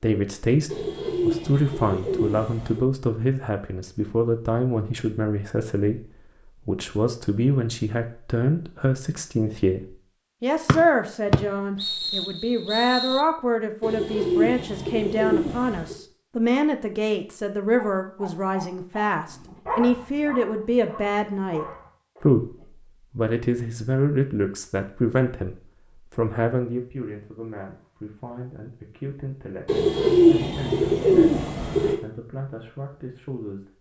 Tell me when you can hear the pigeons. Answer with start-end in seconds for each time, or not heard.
0.7-2.9, 13.8-15.9, 29.6-31.9.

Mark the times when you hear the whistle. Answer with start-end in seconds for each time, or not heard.
10.7-13.2.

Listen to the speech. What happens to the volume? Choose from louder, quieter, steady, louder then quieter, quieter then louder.
quieter.